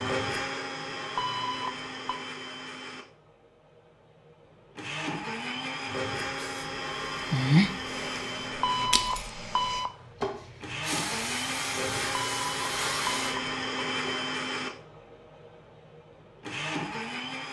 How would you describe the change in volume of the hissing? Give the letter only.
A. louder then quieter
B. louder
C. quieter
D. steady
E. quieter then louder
E.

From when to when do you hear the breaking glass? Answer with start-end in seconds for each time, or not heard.
8.9-9.3.